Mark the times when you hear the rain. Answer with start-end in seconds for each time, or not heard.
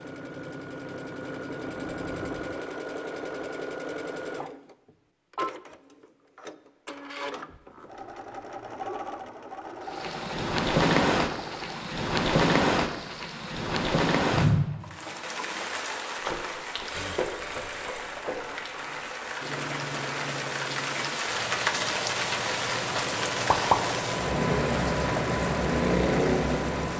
9.9-26.9.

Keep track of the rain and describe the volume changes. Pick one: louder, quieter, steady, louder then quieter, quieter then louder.
quieter then louder.